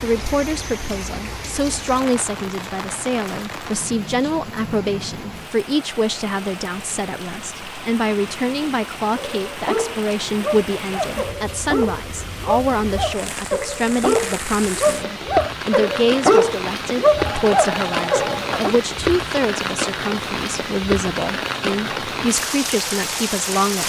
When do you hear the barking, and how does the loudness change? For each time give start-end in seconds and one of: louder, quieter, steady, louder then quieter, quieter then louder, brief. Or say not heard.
9.2-18.8 louder.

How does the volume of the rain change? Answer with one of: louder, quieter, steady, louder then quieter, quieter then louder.
louder.